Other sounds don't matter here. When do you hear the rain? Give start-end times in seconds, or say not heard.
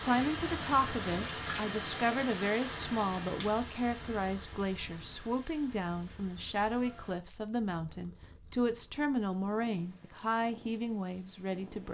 0.0-7.2.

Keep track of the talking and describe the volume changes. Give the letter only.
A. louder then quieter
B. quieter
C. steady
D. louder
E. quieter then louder
C.